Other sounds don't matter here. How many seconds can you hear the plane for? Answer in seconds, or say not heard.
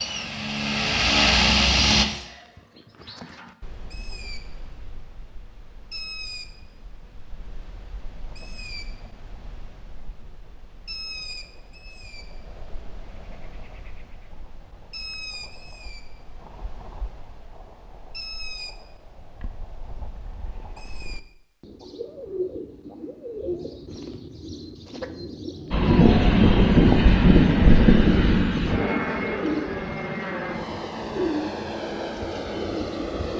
10 s.